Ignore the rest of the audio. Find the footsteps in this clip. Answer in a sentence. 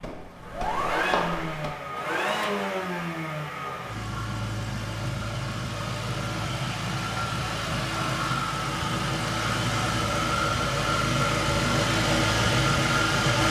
The footsteps can be heard from 0.0 to 1.8 s.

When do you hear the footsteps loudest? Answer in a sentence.
The volume of the footsteps peaks at 1 second.